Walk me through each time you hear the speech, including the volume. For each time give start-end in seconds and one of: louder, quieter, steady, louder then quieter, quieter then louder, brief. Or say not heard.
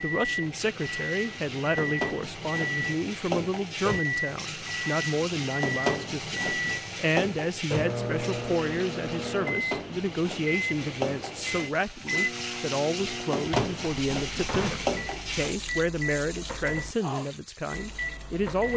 0.0-18.7 steady.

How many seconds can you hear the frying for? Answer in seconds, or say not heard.
19 s.